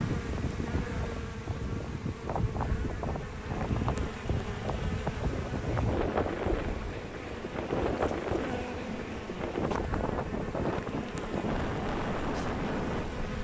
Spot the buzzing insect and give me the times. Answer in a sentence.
You can hear the buzzing insect from 0.0 to 13.3 s.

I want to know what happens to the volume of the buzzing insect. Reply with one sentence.
The volume of the buzzing insect stays about the same.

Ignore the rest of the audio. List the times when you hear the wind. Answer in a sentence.
The wind can be heard from 0.0 to 13.3 s.